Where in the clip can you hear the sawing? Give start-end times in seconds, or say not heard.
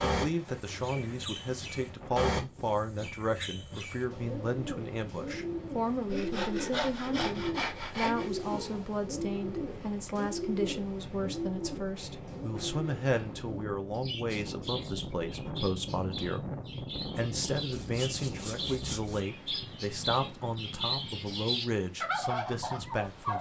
6.0-8.3, 17.7-19.2.